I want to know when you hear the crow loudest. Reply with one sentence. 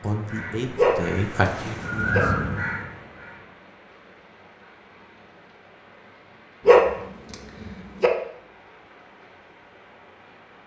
The volume of the crow peaks at 2 seconds.